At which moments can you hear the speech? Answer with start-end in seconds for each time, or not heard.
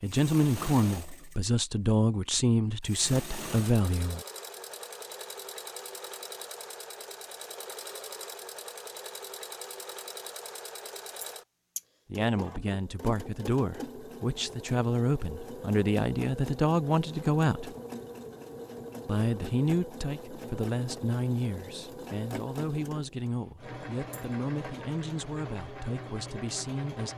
0.0-4.2, 12.1-17.8, 19.1-27.1.